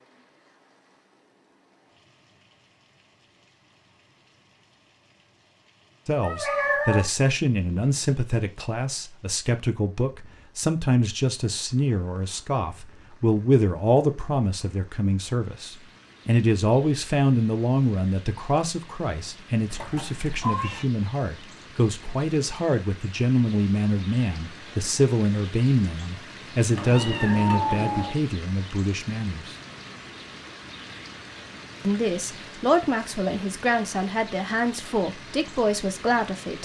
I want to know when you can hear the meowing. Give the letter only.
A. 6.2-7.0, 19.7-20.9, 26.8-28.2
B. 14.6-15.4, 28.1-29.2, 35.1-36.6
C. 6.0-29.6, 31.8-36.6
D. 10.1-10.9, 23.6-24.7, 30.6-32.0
A.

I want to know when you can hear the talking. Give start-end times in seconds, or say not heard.
6.0-29.6, 31.8-36.6.